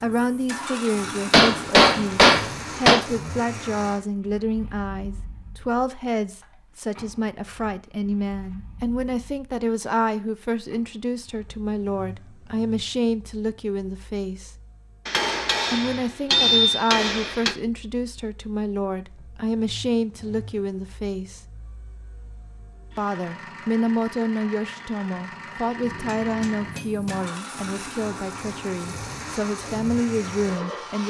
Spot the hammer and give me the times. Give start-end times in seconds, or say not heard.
1.3-3.0, 15.1-17.6, 25.8-27.2.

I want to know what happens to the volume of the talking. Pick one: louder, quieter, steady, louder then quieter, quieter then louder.
steady.